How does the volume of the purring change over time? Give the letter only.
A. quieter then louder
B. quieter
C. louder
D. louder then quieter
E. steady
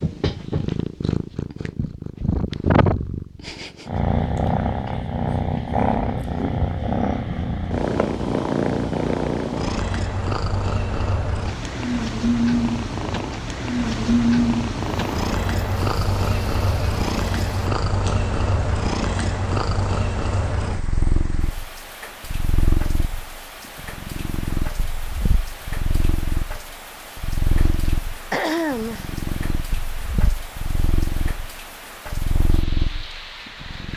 B.